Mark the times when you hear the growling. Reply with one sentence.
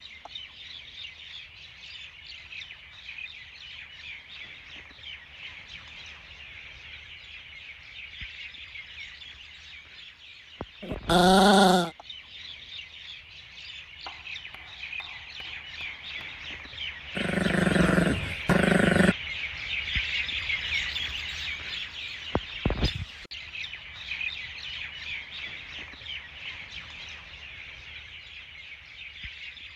The growling can be heard from 10.8 to 11.9 s and from 17.1 to 19.1 s.